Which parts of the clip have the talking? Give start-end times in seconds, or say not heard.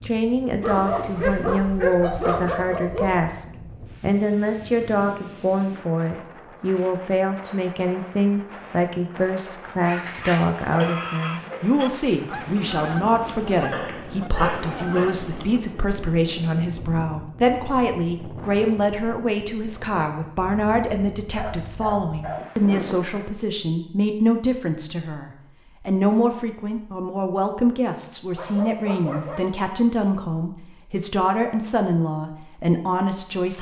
0.0-33.5.